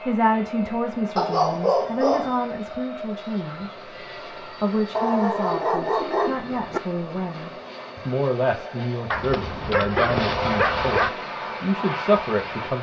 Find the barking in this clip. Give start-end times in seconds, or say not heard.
1.1-2.4, 5.0-6.8, 9.1-11.1.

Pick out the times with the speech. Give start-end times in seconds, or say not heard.
0.0-12.7.